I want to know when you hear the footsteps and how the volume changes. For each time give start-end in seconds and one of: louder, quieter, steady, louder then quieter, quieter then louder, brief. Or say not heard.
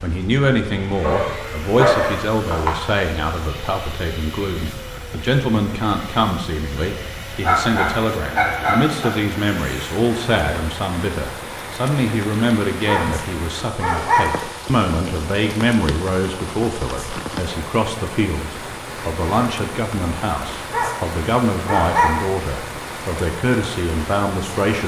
not heard.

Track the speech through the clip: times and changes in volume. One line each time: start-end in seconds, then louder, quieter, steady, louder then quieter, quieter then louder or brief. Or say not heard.
0.0-24.8 steady.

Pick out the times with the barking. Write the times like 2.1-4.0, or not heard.
1.0-2.8, 7.4-9.1, 12.8-14.3, 20.7-22.2.